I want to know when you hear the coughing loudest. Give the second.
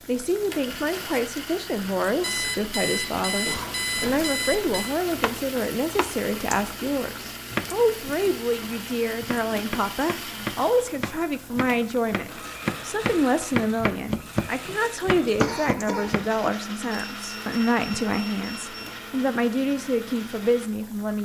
16 s.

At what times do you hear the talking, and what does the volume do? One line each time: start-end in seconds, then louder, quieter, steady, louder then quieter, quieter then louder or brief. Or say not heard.
0.1-21.2 steady.